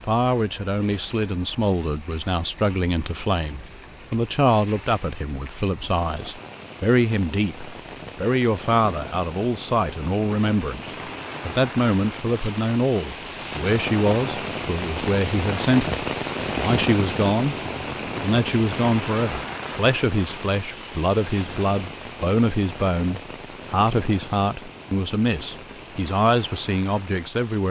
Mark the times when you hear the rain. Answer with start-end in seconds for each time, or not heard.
0.0-27.6.